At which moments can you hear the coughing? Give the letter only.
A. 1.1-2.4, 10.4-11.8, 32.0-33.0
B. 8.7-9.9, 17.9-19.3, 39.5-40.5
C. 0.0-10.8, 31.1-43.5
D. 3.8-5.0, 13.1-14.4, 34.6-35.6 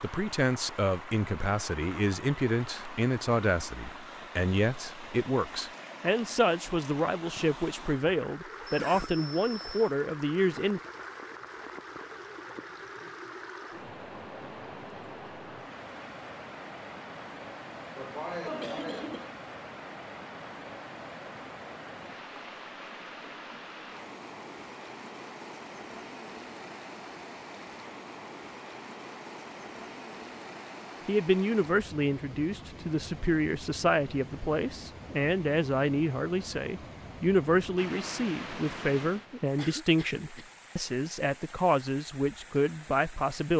B.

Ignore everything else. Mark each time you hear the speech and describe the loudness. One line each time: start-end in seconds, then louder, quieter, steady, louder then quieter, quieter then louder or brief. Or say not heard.
0.0-10.8 steady
31.1-43.5 steady.